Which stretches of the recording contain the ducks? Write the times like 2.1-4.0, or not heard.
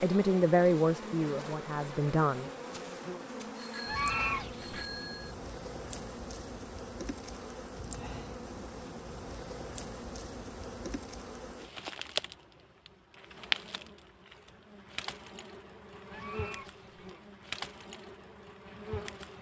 3.9-4.9, 16.1-17.1.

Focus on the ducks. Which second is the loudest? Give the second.
4 s.